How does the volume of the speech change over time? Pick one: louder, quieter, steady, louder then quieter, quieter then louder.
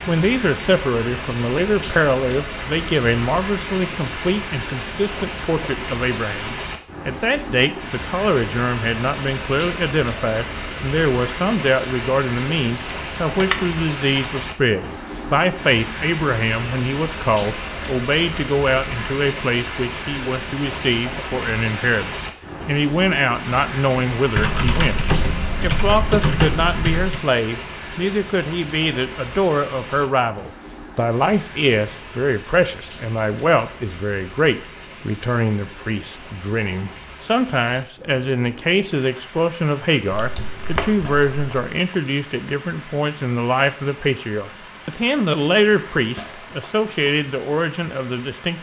steady.